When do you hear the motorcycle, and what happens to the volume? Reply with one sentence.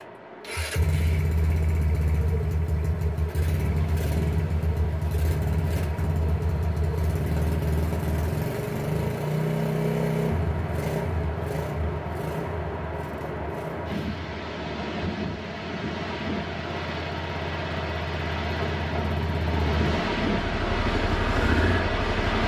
You can hear the motorcycle from 0.0 to 22.4 s, getting quieter then louder.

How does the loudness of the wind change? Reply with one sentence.
The loudness of the wind goes up.